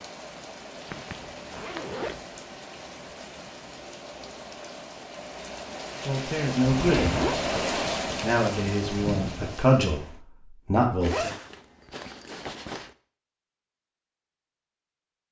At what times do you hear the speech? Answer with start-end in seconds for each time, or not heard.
6.0-7.3, 8.2-11.3.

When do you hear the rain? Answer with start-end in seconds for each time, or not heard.
0.0-10.2.